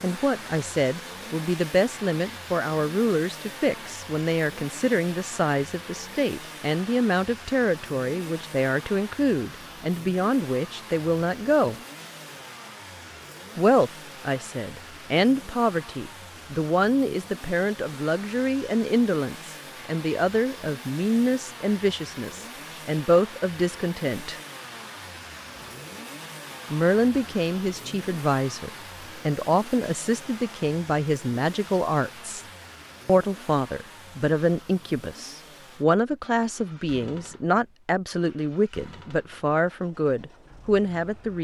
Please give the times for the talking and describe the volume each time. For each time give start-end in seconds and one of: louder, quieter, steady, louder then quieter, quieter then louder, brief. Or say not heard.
0.0-11.8 steady
13.6-24.4 steady
26.7-32.5 steady
33.0-41.3 steady.